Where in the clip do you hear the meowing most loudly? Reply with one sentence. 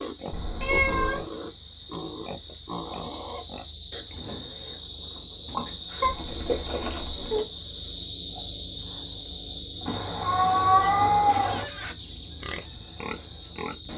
The volume of the meowing peaks at 11 seconds.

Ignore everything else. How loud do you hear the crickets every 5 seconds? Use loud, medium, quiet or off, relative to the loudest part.
medium, loud, loud.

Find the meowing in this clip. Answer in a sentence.
The meowing can be heard from 0.3 to 1.2 s, from 6.0 to 7.5 s and from 9.8 to 11.7 s.